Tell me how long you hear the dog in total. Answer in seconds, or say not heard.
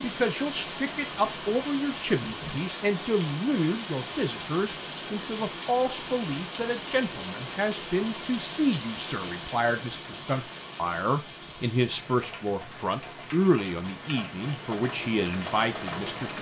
not heard.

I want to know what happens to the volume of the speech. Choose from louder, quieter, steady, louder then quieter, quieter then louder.
steady.